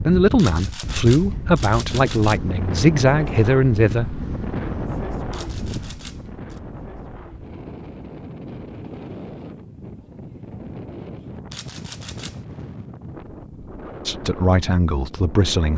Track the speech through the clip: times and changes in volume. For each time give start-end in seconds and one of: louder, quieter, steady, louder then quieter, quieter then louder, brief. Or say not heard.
0.0-4.2 steady
14.1-15.7 brief.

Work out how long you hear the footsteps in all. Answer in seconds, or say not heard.
not heard.